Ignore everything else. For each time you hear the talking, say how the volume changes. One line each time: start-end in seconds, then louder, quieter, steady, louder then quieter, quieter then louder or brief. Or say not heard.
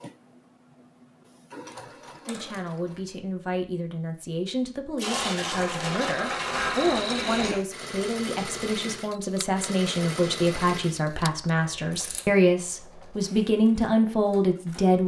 2.2-15.0 louder.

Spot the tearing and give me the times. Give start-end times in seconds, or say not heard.
5.0-6.2.